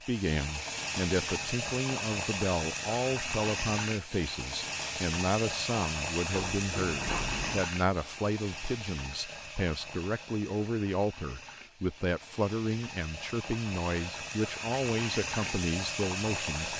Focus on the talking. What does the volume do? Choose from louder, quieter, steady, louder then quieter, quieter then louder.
steady.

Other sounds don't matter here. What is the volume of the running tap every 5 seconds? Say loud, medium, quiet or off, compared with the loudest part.
loud, loud, medium, loud.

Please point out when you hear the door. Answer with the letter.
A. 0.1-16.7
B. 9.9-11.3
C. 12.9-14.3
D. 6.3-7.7
D.